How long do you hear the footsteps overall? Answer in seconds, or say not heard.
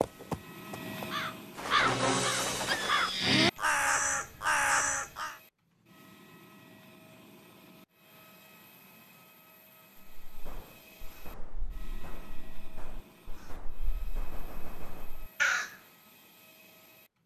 not heard.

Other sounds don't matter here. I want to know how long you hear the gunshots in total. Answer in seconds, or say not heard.
5 s.